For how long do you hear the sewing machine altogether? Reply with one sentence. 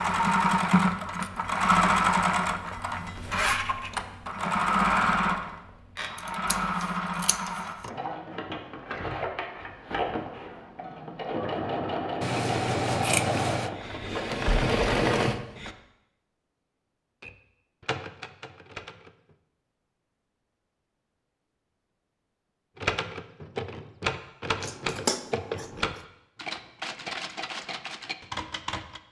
You can hear the sewing machine for 16 seconds altogether.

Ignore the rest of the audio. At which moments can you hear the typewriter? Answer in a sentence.
You can hear the typewriter from 17.2 to 19.4 s and from 22.8 to 29.0 s.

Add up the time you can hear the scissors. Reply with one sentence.
The scissors can be heard for 5 seconds in total.